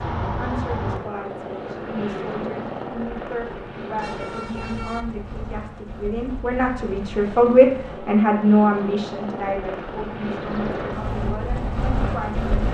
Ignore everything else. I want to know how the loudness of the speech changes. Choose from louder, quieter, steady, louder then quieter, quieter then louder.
louder then quieter.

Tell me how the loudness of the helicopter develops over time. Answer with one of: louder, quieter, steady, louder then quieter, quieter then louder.
quieter then louder.